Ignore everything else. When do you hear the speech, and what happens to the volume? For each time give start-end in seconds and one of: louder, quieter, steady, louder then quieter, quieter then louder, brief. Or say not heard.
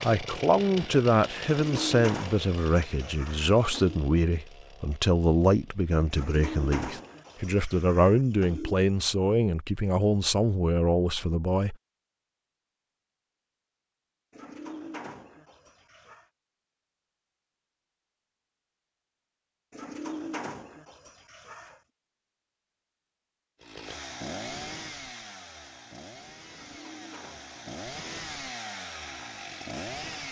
0.0-11.8 steady.